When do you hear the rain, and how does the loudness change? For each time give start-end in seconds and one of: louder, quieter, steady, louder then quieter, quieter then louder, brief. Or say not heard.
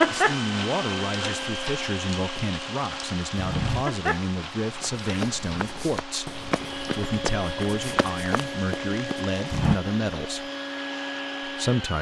0.0-11.9 quieter.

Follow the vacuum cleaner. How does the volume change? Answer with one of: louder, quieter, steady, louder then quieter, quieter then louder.
quieter then louder.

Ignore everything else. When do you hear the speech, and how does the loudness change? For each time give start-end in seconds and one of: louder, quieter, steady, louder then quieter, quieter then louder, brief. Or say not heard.
0.0-10.5 steady
11.4-11.9 brief.